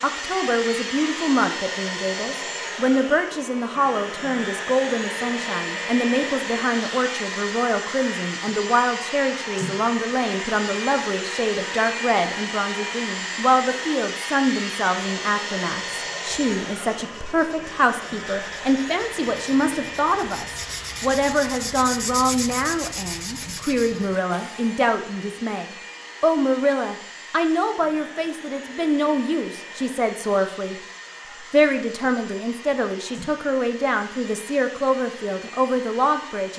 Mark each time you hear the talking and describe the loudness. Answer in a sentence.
The talking can be heard from 0.0 to 30.8 s, at a steady volume; and from 31.5 to 36.5 s, at a steady volume.